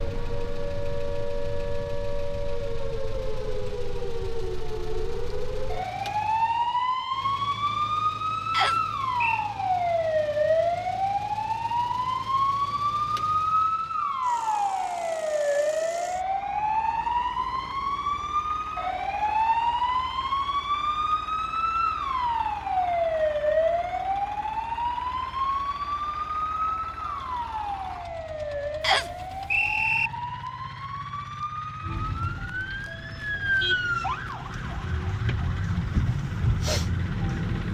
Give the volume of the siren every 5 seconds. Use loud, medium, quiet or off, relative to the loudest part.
medium, loud, loud, loud, loud, medium, medium, loud.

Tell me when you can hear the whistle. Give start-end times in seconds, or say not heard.
8.5-9.5, 28.8-30.1.